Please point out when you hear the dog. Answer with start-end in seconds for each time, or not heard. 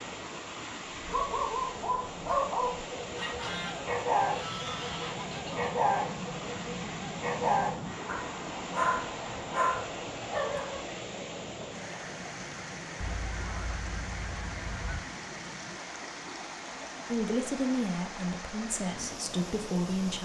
0.9-10.8.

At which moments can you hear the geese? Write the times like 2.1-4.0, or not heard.
3.1-5.8, 13.0-15.0.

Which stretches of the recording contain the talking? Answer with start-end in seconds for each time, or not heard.
17.1-20.2.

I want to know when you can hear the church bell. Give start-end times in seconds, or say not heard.
not heard.